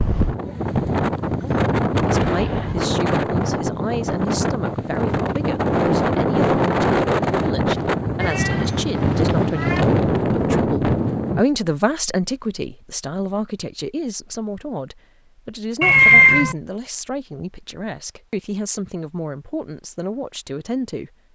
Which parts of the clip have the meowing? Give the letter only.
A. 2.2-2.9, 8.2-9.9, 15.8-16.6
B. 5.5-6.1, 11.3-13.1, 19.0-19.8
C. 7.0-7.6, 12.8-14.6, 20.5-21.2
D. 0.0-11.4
A.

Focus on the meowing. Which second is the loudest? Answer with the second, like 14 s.
16 s.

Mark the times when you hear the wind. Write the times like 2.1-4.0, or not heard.
0.0-11.4.